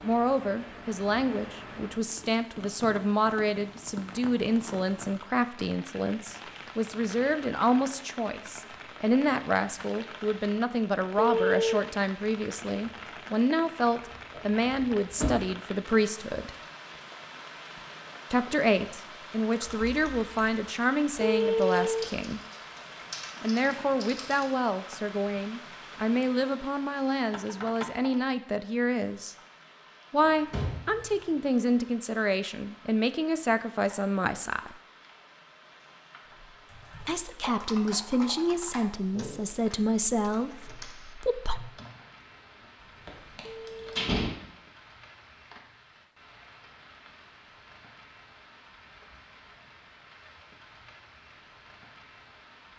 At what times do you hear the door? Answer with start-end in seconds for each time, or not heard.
14.0-15.4, 30.2-31.1, 43.0-44.3.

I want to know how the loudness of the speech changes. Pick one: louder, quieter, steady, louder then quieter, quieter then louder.
steady.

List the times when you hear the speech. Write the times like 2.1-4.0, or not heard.
0.0-16.5, 18.3-22.4, 23.4-29.4, 30.1-34.8, 37.0-41.6.